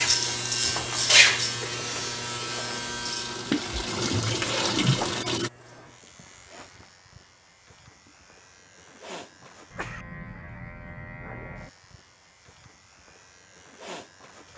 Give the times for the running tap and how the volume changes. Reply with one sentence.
You can hear the running tap from 0.0 to 5.5 s, getting louder.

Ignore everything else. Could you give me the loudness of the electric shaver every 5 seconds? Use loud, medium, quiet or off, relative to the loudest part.
loud, quiet, quiet.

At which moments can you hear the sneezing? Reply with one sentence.
The sneezing can be heard from 3.5 to 5.1 s and from 9.4 to 10.1 s.